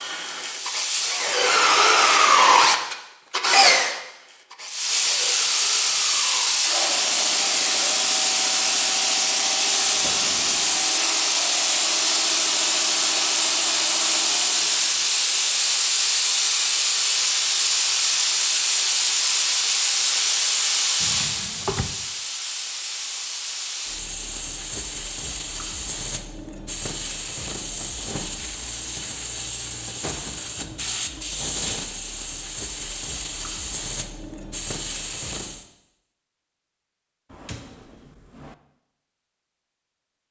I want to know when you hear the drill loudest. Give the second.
2 s.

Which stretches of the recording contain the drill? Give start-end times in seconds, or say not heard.
0.0-8.0.